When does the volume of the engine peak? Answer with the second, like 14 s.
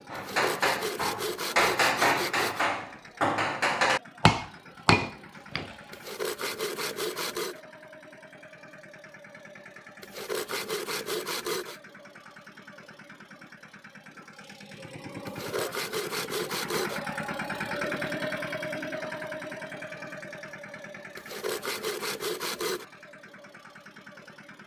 18 s.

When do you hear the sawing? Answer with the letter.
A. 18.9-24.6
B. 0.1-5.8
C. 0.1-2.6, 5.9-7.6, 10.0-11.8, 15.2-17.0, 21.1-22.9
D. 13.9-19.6
C.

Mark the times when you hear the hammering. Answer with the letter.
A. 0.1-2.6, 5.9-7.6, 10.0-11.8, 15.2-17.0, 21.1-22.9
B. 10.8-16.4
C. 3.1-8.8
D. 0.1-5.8
D.